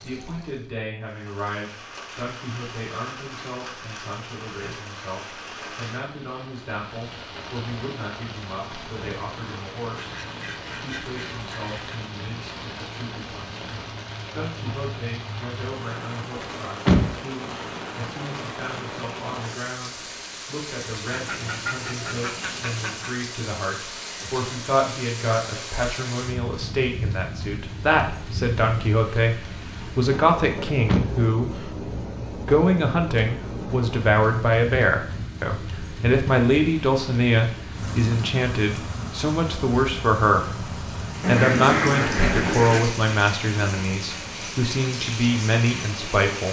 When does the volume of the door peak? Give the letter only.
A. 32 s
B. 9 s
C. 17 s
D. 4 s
C.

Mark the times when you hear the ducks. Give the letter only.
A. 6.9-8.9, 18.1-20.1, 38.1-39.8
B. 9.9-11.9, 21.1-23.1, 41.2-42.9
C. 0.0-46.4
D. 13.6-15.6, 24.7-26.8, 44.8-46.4
B.